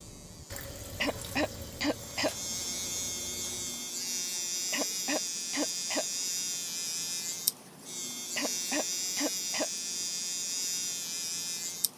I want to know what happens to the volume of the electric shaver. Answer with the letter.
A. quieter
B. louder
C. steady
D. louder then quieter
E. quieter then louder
B.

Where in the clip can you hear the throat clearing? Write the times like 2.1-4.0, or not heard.
1.0-2.4, 4.7-6.0, 8.3-9.7.